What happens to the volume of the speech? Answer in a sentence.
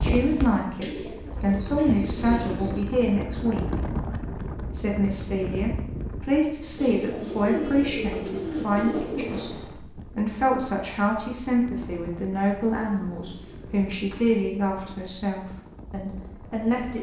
The volume of the speech stays about the same.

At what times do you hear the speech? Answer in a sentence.
The speech can be heard from 0.0 to 3.6 s and from 4.7 to 16.9 s.